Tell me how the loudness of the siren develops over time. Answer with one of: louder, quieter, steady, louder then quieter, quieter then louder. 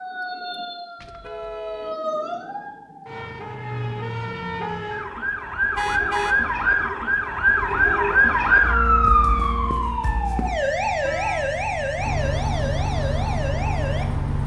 louder then quieter.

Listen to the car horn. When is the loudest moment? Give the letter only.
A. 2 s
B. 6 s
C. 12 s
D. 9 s
B.